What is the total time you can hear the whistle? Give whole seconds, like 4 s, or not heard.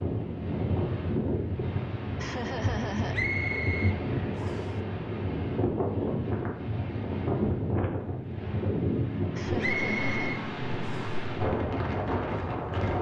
3 s.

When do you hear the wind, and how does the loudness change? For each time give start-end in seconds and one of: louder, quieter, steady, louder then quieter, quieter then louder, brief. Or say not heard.
0.0-12.9 steady.